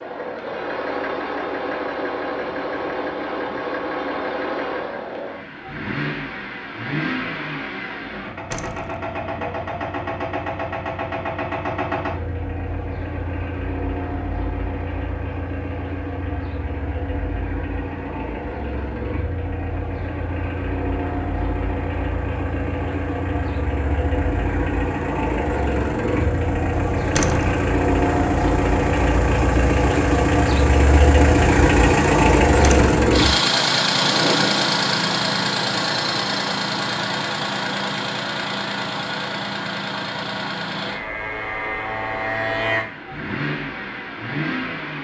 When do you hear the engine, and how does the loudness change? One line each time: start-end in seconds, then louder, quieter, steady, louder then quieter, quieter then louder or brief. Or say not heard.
0.0-44.9 louder then quieter.